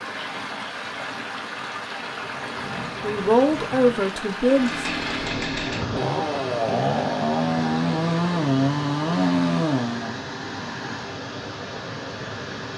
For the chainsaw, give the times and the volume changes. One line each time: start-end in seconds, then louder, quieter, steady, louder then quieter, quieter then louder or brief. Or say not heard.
4.4-10.2 louder.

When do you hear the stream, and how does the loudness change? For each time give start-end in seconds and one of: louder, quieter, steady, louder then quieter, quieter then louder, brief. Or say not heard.
0.0-12.7 steady.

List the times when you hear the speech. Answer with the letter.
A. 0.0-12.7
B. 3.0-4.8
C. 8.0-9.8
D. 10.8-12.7
B.